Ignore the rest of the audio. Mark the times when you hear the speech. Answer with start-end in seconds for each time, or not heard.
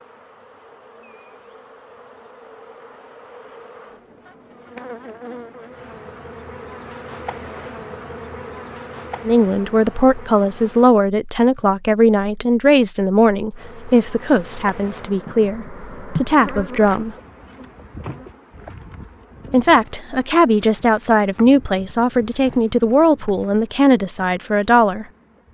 9.2-17.1, 19.5-25.1.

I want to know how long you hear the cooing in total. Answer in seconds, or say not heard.
not heard.